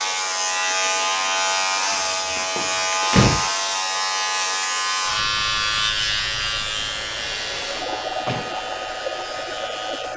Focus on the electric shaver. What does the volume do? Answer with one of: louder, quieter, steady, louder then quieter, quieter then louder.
quieter.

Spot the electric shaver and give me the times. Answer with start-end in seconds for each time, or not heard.
0.0-10.1.